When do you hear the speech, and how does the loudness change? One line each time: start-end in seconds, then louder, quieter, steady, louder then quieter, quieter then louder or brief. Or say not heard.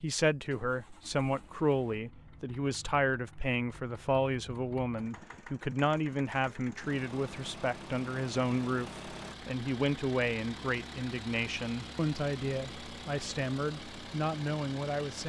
0.0-15.2 steady.